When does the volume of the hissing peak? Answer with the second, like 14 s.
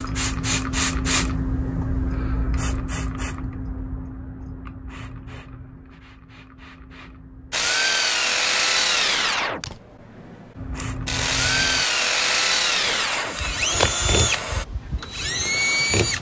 1 s.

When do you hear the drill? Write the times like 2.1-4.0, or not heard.
7.5-16.1.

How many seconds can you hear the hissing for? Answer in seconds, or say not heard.
12 s.